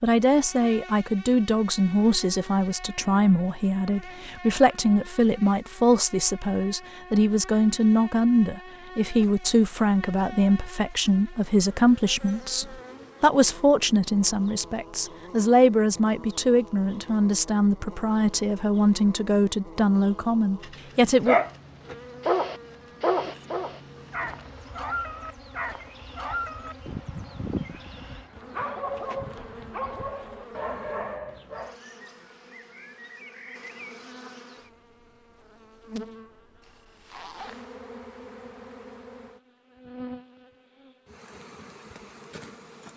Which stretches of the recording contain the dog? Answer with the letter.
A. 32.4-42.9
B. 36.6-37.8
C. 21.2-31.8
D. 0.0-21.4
C.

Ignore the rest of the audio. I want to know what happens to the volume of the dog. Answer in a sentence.
The volume of the dog goes down.